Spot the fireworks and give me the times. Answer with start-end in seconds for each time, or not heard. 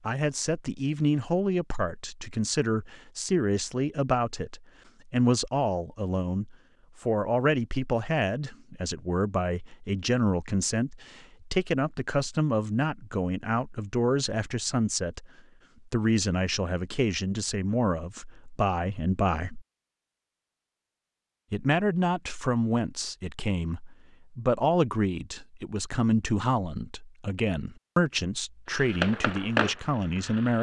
28.7-30.5.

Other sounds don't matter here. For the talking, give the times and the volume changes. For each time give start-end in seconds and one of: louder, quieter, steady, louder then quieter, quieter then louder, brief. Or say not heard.
0.1-19.6 steady
21.5-30.5 steady.